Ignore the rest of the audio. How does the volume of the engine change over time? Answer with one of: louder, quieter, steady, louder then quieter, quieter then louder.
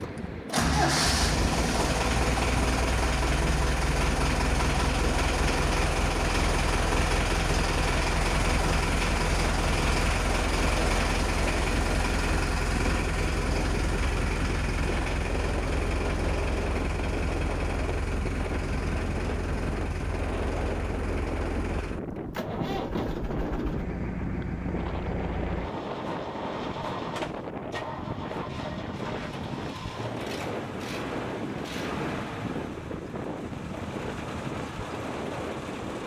quieter.